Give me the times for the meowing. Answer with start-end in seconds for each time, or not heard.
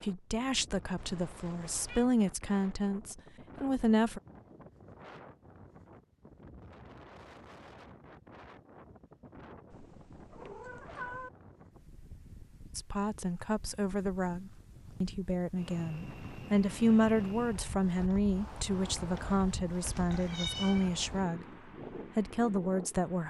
0.9-2.0, 9.7-11.3, 19.8-20.9.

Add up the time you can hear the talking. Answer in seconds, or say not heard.
14 s.